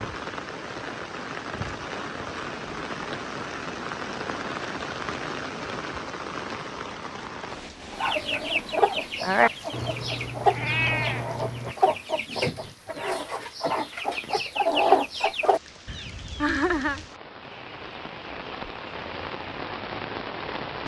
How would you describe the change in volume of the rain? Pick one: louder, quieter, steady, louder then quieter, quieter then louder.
quieter then louder.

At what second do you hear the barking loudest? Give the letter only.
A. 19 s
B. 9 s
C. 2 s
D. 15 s
B.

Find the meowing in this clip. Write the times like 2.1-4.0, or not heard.
9.7-11.8.